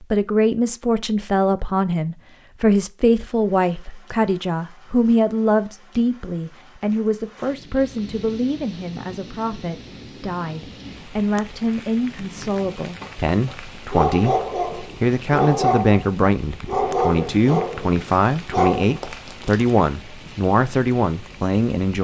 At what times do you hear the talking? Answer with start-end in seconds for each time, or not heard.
0.0-22.0.